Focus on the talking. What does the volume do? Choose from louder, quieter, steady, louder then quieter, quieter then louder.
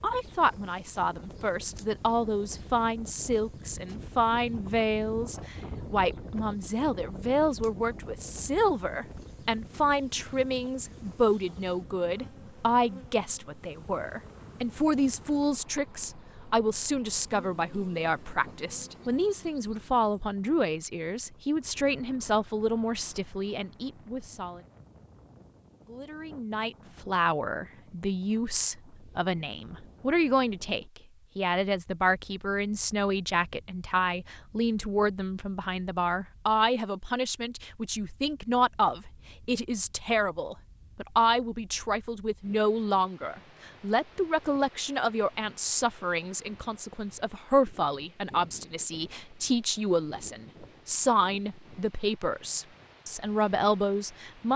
steady.